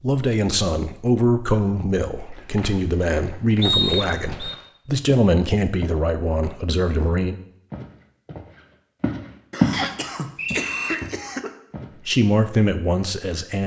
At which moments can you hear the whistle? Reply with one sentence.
The whistle can be heard from 3.6 to 4.5 s and from 9.7 to 10.9 s.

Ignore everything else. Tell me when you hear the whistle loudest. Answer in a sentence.
The volume of the whistle peaks at 4 seconds.